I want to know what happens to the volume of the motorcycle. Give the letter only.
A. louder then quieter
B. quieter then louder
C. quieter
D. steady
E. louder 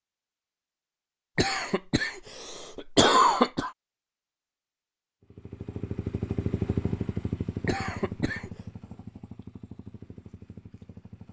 C.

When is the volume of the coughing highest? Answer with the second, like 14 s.
3 s.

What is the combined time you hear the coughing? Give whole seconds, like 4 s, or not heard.
3 s.